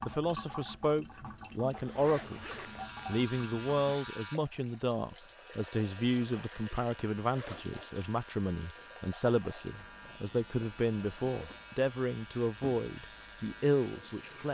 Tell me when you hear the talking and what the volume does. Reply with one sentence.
You can hear the talking briefly from 0.0 to 2.5 s; and from 3.0 to 14.5 s, at a steady volume.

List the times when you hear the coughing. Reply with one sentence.
The coughing can't be heard in this clip.